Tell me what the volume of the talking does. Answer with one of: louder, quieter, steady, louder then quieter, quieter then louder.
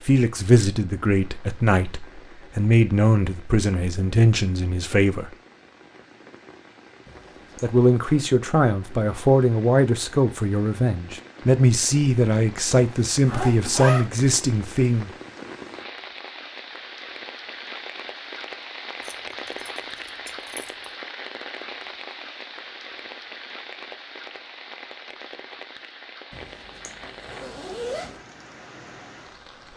steady.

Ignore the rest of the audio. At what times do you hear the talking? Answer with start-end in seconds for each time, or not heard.
0.0-5.3, 7.6-15.1.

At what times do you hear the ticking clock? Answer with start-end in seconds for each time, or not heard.
not heard.